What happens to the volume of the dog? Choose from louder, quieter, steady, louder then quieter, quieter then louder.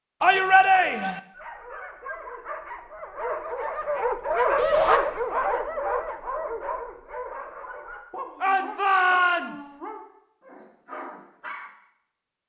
louder then quieter.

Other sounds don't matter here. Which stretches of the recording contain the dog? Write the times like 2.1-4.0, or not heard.
1.3-11.7.